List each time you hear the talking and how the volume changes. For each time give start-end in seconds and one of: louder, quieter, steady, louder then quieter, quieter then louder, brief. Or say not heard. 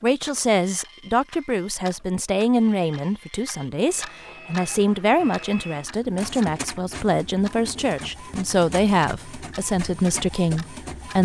0.0-11.1 steady.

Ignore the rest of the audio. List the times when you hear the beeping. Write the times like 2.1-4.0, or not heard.
not heard.